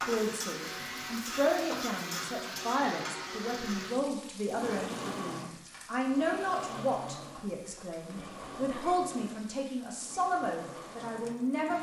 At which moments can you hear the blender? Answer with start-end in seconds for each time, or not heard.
0.0-11.7.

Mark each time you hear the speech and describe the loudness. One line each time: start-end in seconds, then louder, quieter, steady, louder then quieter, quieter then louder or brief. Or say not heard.
0.1-11.7 steady.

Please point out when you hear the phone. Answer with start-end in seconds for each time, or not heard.
not heard.